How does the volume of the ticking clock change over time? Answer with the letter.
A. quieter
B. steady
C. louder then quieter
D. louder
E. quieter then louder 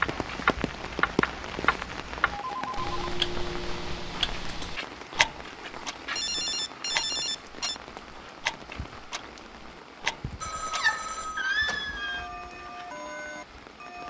A.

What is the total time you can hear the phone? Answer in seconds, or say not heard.
4 s.